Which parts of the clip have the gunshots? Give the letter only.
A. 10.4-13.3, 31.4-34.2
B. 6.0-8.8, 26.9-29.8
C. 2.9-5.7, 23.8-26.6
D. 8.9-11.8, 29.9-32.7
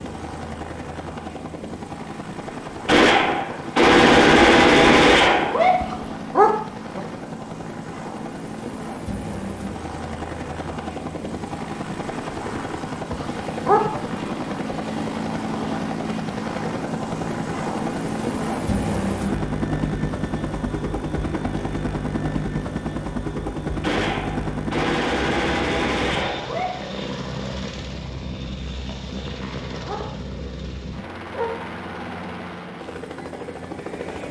C.